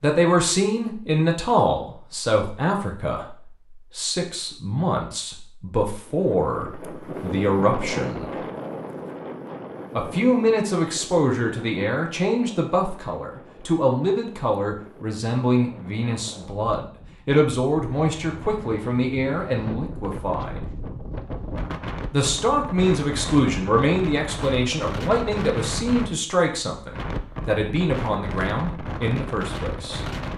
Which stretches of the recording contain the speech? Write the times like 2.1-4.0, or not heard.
0.0-8.3, 9.9-20.6, 22.1-30.0.